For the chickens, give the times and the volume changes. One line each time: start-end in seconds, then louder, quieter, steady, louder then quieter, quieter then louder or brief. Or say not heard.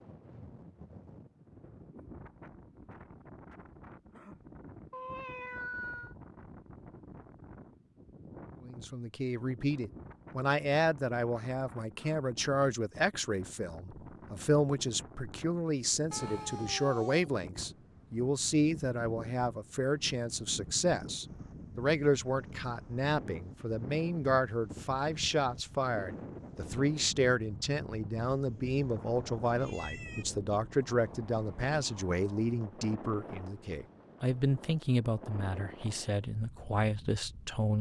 not heard.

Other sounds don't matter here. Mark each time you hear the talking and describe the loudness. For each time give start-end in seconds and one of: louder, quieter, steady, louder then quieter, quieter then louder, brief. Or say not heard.
8.6-37.7 steady.